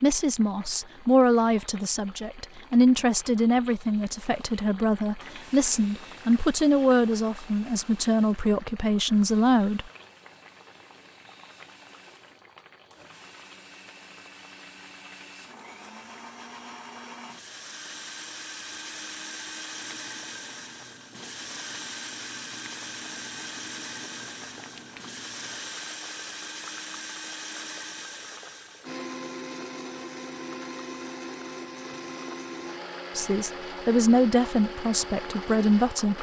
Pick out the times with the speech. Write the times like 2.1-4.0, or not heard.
0.0-9.8, 33.1-36.1.